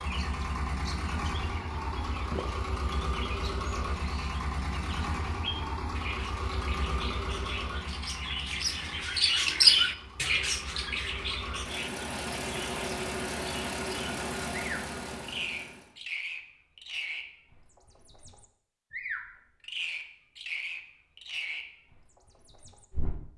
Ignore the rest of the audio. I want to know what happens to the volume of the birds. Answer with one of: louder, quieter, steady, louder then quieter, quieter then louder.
louder then quieter.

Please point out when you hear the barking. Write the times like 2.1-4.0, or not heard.
not heard.